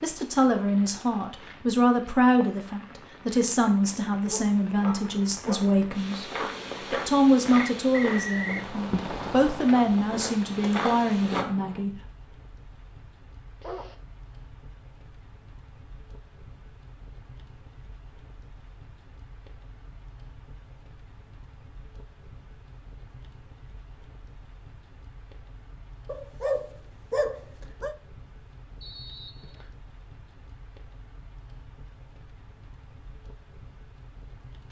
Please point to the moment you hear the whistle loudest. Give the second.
8 s.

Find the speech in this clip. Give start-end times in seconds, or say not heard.
0.0-11.9.